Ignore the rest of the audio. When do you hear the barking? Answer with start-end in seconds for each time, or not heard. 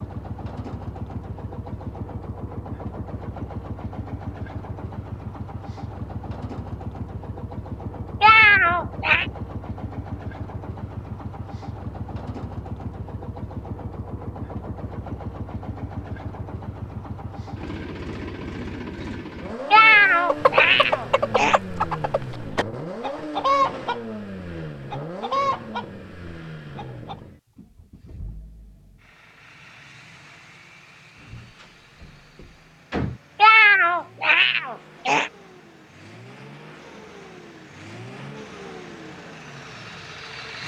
not heard.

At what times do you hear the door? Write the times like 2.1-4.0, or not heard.
31.2-33.2.